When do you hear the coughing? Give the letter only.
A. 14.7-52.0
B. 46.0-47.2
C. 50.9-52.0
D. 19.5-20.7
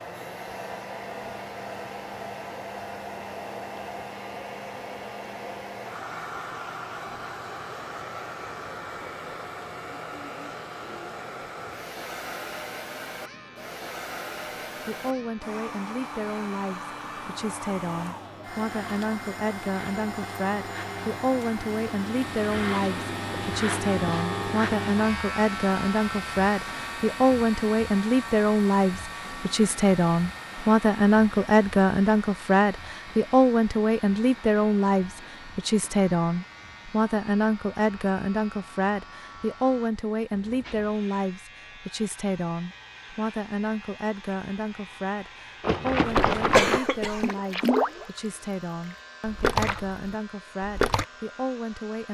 B.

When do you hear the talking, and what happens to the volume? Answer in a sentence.
The talking can be heard from 14.7 to 52.0 s, getting louder then quieter.